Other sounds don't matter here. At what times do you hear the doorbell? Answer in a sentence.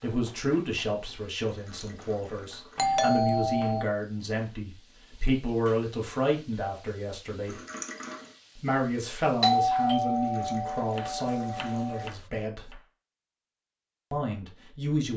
You can hear the doorbell from 2.8 to 3.9 s and from 9.4 to 12.1 s.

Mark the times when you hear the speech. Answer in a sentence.
The speech can be heard from 0.0 to 7.5 s, from 8.6 to 12.8 s and from 14.1 to 15.1 s.